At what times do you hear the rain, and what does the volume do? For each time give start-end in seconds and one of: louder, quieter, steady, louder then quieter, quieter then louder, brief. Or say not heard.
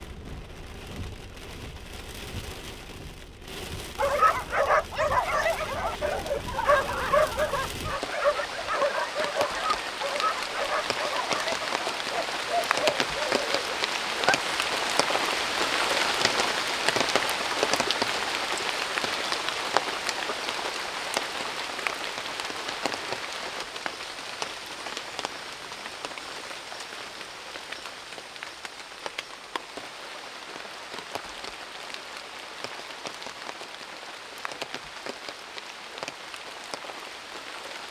0.0-37.8 louder then quieter.